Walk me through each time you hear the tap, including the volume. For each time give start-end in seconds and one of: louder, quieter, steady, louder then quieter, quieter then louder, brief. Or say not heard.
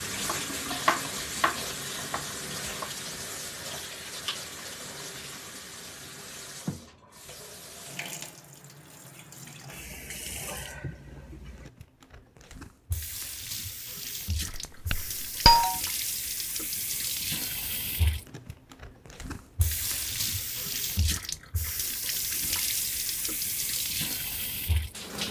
0.0-25.2 quieter then louder.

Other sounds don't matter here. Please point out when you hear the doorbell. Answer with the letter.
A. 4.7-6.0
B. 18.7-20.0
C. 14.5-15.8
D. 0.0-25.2
C.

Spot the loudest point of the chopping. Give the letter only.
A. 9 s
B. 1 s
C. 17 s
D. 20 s
B.